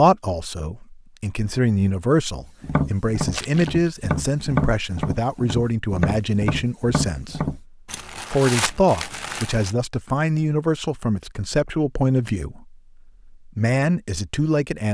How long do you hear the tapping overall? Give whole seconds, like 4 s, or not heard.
5 s.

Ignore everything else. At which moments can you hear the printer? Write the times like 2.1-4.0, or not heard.
not heard.